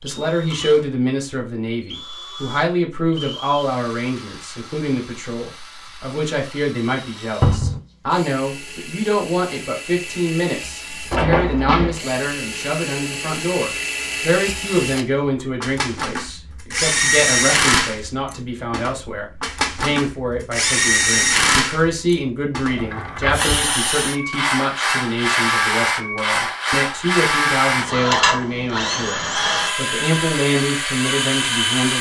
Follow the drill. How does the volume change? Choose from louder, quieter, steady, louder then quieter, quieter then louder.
louder.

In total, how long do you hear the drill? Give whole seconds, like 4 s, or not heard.
32 s.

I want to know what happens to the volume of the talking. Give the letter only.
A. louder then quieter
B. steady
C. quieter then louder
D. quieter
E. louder
B.